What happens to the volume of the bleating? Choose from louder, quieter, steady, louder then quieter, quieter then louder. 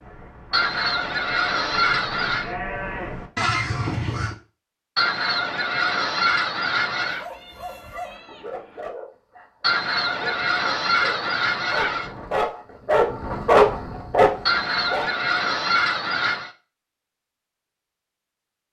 louder.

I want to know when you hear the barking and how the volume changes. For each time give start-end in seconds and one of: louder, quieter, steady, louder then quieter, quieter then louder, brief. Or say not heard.
7.0-15.1 louder.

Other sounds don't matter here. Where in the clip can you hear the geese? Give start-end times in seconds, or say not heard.
0.5-2.5, 5.0-7.2, 9.6-12.1, 14.4-16.5.